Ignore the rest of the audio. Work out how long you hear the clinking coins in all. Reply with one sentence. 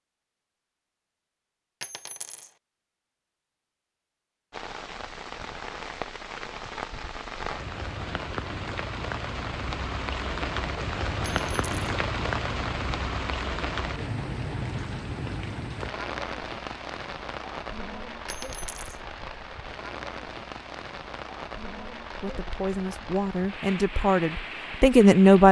You can hear the clinking coins for 2 seconds altogether.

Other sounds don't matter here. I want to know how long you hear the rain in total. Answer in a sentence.
The rain can be heard for 21 seconds in total.